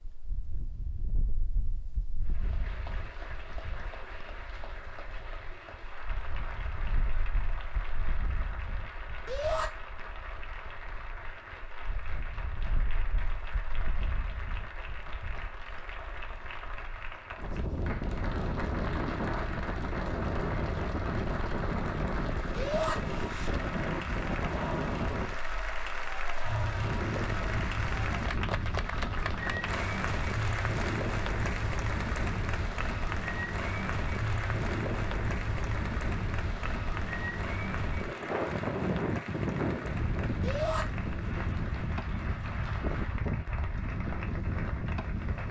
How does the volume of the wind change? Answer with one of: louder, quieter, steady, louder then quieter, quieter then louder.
louder.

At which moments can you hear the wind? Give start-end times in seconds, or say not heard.
0.0-45.4.